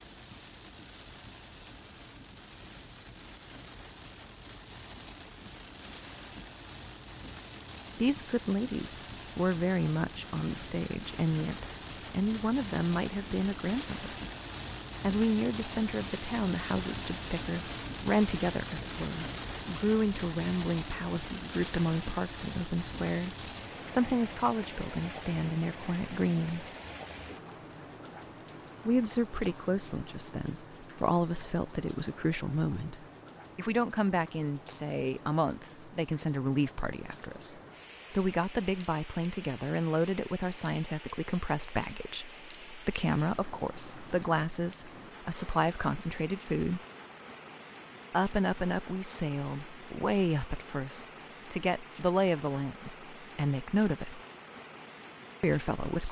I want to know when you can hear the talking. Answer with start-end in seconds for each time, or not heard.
8.0-14.2, 15.0-26.7, 28.9-46.8, 48.1-54.2, 55.4-56.0.